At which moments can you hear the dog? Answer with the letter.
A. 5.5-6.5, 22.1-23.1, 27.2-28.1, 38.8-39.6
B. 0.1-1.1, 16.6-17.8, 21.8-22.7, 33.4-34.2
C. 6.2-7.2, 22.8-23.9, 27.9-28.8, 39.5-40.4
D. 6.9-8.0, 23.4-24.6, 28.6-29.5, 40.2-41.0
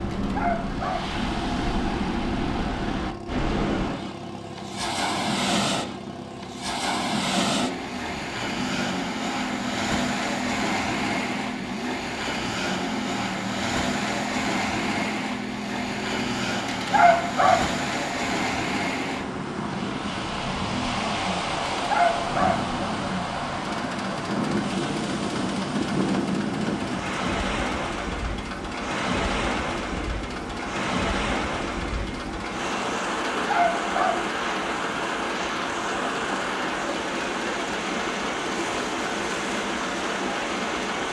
B.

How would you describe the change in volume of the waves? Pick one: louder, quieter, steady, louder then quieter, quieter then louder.
steady.